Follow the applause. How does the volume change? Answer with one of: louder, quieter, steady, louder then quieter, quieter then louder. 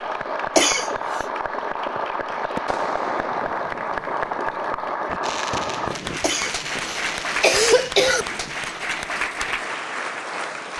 steady.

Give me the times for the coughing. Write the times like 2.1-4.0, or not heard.
0.6-1.2, 6.2-8.2.